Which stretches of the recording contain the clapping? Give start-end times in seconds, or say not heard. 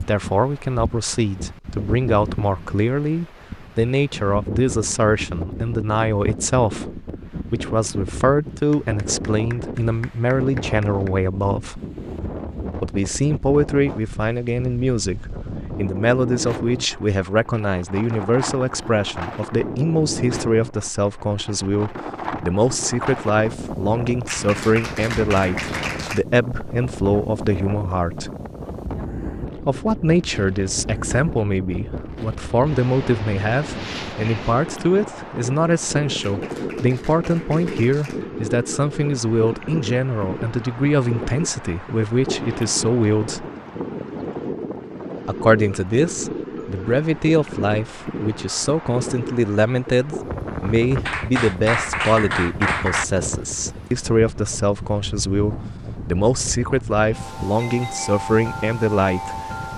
8.7-11.1, 24.2-26.2, 36.2-38.2, 51.0-53.0.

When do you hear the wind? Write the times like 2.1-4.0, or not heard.
0.0-59.7.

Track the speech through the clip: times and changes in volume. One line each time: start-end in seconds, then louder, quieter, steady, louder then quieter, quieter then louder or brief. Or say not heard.
0.0-11.8 steady
12.8-28.3 steady
29.6-43.5 steady
45.2-59.7 steady.